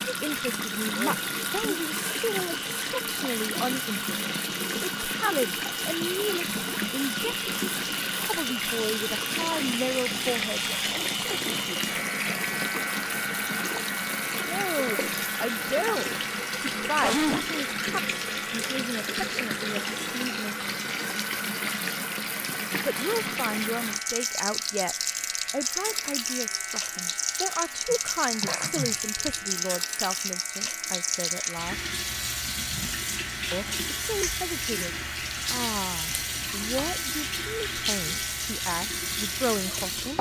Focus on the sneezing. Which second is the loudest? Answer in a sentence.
The volume of the sneezing peaks at 17 seconds.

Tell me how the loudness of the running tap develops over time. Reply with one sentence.
The loudness of the running tap stays about the same.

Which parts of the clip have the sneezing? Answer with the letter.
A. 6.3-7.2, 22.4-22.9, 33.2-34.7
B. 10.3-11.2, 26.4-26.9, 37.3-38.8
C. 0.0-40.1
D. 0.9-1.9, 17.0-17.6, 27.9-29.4
D.